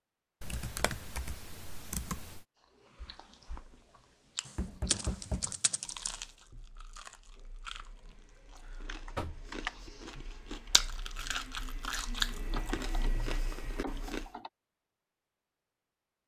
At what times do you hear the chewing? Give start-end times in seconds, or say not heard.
2.6-14.3.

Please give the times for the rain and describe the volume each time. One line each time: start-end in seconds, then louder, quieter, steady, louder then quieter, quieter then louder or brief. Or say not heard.
not heard.